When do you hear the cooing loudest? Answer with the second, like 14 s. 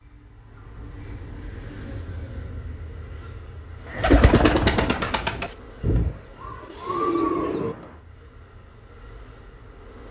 4 s.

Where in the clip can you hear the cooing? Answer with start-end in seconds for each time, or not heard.
3.9-7.8.